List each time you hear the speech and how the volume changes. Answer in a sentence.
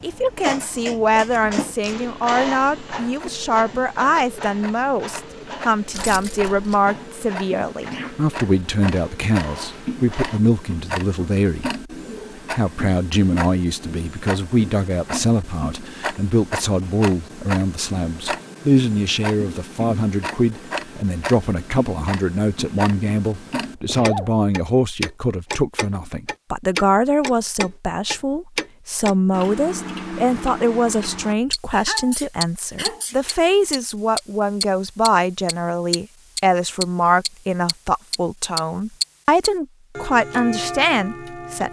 The speech can be heard from 0.0 to 41.6 s, at a steady volume.